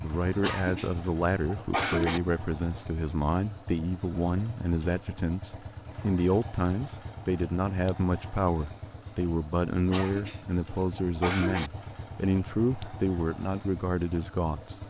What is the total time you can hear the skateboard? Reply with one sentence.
You can't hear the skateboard here.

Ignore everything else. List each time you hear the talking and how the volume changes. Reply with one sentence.
The talking can be heard from 0.0 to 14.8 s, at a steady volume.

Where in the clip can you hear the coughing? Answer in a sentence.
You can hear the coughing from 0.4 to 2.2 s and from 9.9 to 11.7 s.